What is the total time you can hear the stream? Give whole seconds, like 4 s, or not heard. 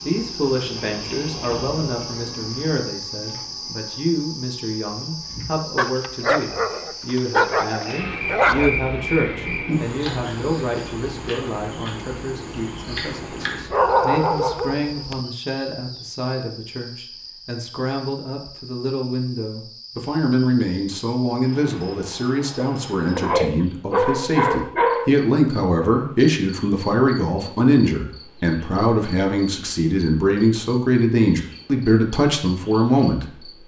not heard.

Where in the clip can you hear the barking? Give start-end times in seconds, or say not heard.
5.8-8.7, 13.7-15.2, 23.1-25.1.